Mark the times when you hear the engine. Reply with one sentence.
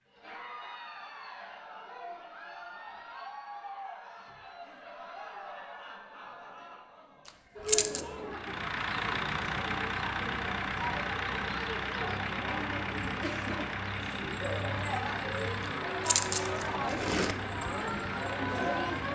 You can hear the engine from 8.3 to 19.1 s.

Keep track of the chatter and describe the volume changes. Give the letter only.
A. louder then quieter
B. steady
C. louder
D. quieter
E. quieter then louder
C.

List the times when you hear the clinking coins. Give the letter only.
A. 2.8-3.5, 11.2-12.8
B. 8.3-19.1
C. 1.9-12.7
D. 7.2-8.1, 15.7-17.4
D.